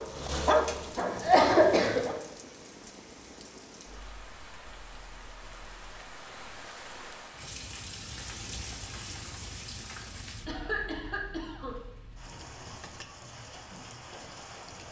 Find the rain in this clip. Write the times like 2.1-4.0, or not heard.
0.0-14.8.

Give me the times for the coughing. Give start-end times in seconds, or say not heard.
0.9-2.0, 10.4-11.8.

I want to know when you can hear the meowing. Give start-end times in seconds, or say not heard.
not heard.